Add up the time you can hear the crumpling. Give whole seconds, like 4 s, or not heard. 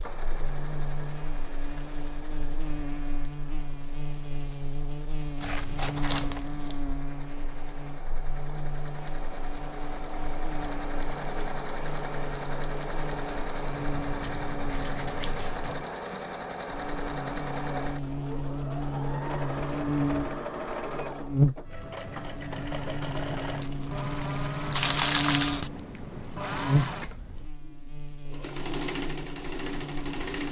3 s.